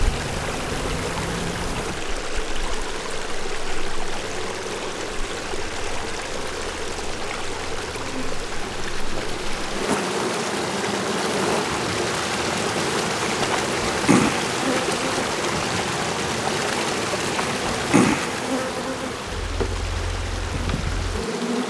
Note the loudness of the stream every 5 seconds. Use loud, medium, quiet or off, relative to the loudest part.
medium, medium, loud, loud, medium.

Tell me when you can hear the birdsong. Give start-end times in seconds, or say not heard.
not heard.